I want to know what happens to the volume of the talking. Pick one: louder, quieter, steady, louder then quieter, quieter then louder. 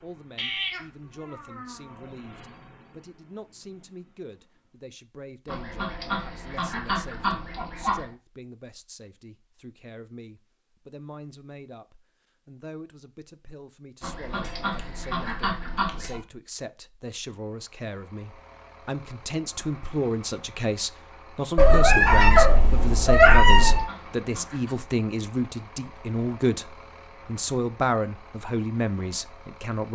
louder.